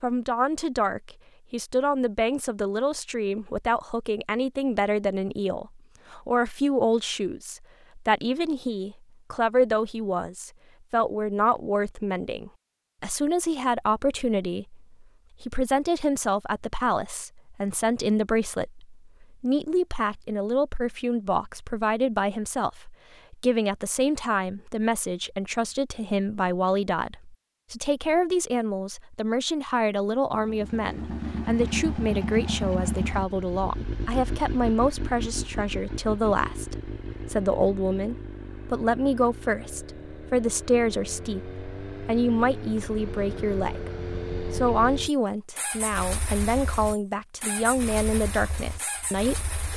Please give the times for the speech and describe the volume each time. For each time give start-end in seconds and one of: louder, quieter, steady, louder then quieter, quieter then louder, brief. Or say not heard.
0.0-49.7 steady.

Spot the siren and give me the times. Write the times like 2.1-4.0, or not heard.
not heard.